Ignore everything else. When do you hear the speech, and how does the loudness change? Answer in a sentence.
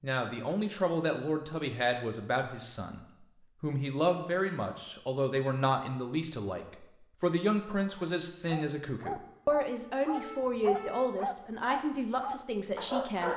The speech can be heard from 0.0 to 13.3 s, at a steady volume.